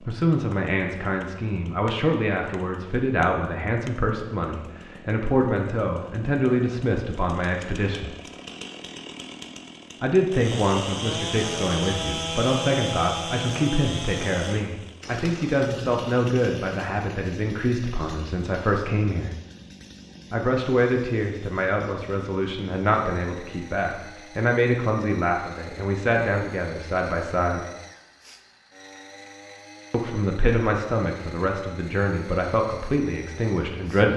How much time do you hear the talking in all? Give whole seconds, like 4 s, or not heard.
29 s.